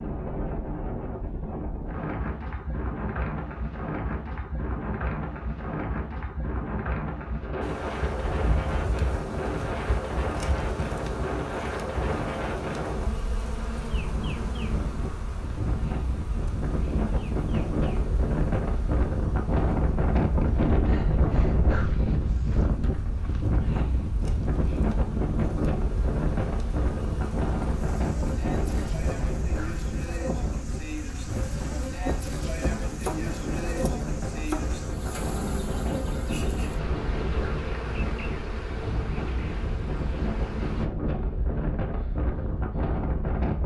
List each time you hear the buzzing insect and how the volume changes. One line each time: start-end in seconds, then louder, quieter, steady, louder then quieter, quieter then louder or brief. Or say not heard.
7.6-40.9 quieter then louder.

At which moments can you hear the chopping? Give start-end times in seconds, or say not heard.
32.9-34.6.